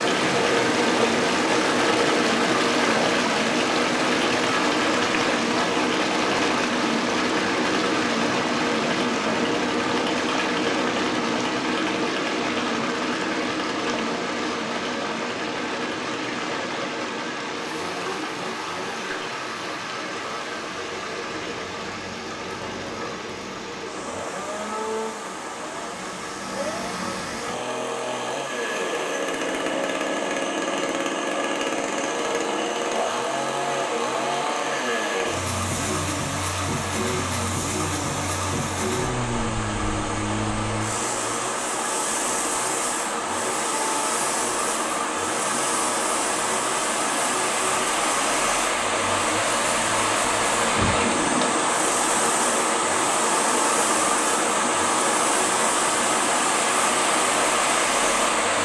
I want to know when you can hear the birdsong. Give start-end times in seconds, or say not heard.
not heard.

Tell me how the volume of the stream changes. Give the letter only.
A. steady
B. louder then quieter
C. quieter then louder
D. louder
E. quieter
C.